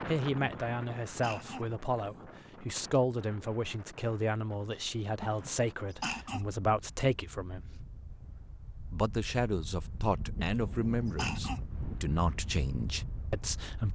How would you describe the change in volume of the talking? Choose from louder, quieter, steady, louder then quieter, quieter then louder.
steady.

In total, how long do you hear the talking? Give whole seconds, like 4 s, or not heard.
13 s.